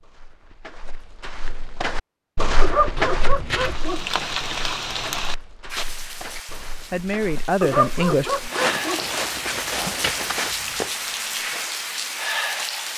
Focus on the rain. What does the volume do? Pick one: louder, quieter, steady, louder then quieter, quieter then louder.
quieter then louder.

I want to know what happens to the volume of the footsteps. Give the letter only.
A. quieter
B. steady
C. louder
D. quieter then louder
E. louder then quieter
D.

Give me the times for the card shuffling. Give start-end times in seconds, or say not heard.
3.0-3.8, 9.0-10.8.